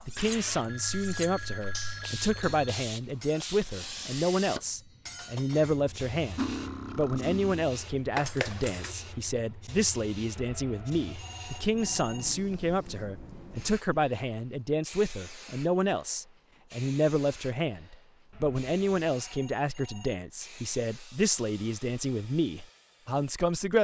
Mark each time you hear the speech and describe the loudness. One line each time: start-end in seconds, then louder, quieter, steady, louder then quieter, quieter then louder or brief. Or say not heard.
0.1-23.7 steady.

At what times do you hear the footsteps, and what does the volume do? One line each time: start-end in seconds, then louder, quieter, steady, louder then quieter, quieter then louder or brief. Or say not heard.
not heard.